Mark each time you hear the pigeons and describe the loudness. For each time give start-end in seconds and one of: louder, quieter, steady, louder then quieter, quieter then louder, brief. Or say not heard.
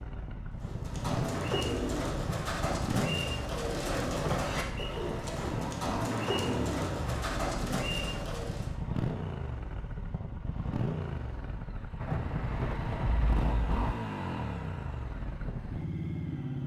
0.6-8.8 steady.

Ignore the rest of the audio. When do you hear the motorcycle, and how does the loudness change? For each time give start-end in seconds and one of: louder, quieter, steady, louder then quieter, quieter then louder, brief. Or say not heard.
0.0-16.6 steady.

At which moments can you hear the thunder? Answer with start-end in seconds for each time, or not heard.
11.9-13.8.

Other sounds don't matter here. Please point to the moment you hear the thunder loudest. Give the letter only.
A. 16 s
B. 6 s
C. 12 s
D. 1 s
C.